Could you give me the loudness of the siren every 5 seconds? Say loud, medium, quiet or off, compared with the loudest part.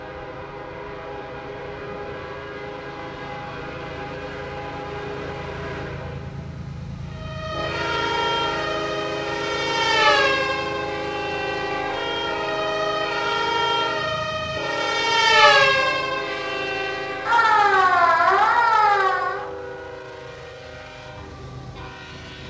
off, medium, medium, loud, off.